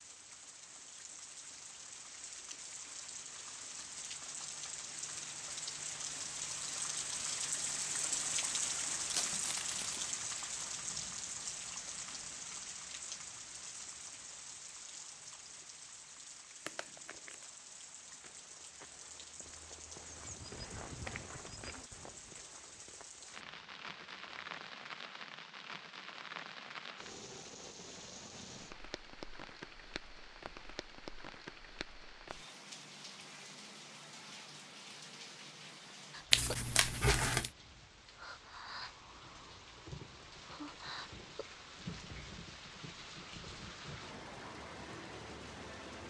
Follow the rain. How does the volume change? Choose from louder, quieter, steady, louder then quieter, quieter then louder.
quieter.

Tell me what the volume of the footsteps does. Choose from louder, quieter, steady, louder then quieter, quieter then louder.
louder then quieter.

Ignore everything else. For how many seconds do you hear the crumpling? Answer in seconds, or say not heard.
3 s.